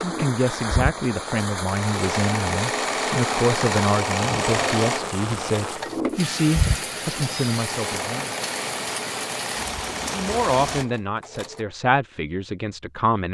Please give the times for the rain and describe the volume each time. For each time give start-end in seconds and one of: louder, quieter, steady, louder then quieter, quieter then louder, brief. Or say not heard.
0.0-10.8 steady.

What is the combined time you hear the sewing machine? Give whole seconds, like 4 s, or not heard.
12 s.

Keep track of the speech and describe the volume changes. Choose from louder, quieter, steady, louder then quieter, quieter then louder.
steady.